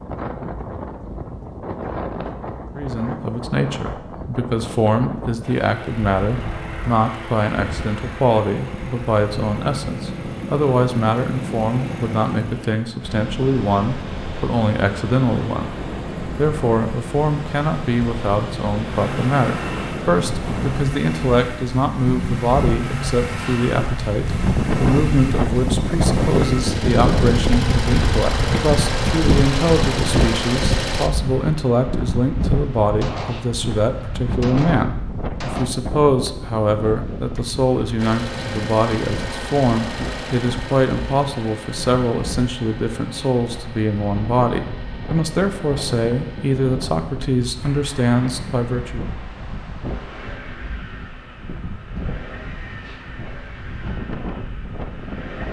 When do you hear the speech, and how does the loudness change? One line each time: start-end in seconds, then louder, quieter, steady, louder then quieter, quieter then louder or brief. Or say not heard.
2.7-49.1 steady.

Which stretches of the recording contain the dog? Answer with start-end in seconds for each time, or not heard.
not heard.